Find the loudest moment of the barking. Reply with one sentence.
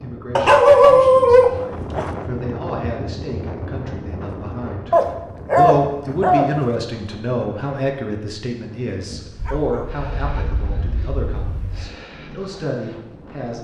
The loudest moment of the barking is at 1 second.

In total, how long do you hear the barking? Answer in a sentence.
You can hear the barking for 6 seconds altogether.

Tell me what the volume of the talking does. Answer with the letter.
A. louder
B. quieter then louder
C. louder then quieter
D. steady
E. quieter
C.